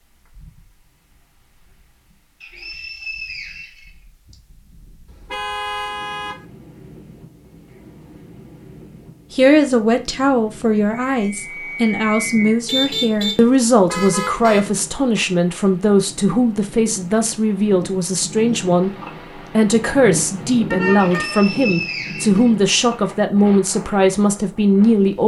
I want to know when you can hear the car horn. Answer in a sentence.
The car horn can be heard from 5.0 to 6.5 s, from 12.7 to 14.7 s and from 20.7 to 21.4 s.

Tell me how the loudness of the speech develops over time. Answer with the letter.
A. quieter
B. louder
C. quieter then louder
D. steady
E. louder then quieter
D.